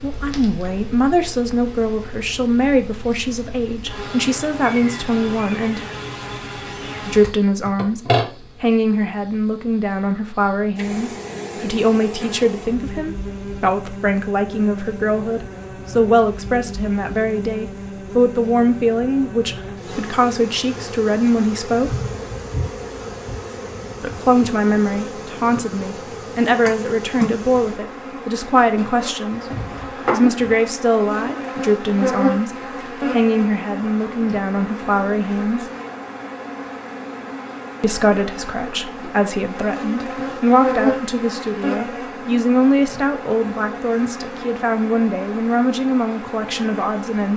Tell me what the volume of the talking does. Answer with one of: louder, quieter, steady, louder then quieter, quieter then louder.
steady.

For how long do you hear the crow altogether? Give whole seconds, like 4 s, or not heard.
not heard.